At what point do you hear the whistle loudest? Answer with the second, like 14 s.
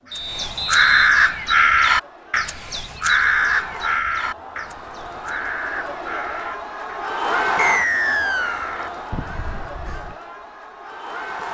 8 s.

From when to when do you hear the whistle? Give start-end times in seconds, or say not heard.
0.1-1.1, 7.5-8.7.